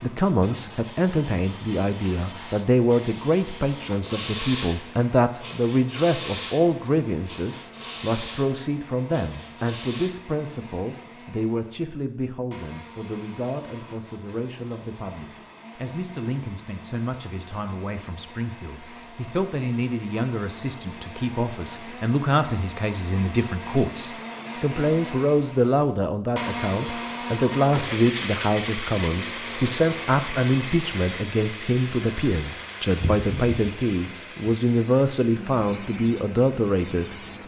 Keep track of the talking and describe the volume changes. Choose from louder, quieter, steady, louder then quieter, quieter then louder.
quieter then louder.